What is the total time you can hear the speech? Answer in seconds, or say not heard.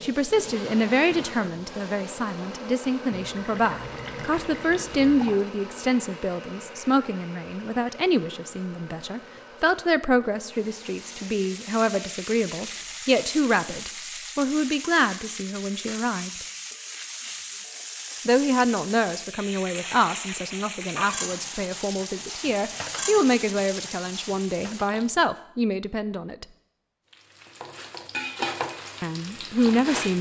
26 s.